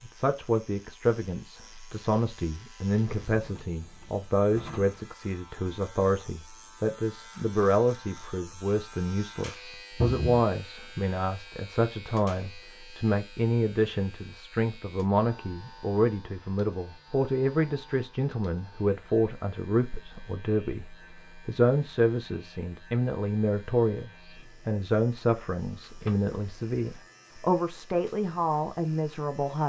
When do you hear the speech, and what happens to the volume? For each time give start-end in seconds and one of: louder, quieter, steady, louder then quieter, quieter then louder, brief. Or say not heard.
0.0-29.6 steady.